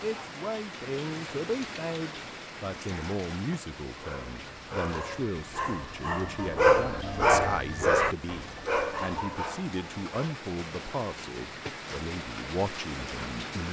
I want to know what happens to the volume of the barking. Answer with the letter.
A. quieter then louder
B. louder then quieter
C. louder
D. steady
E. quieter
B.